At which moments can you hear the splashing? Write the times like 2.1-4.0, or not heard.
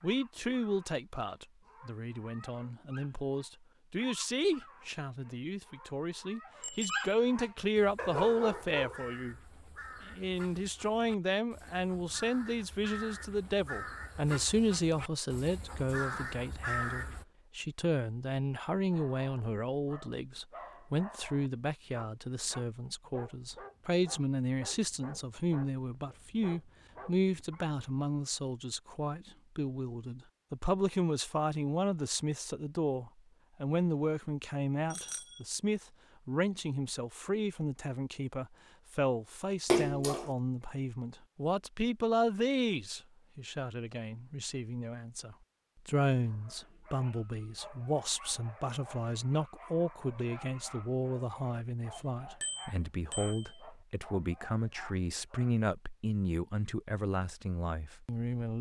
39.6-40.3.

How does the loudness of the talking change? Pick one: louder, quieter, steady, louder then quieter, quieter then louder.
steady.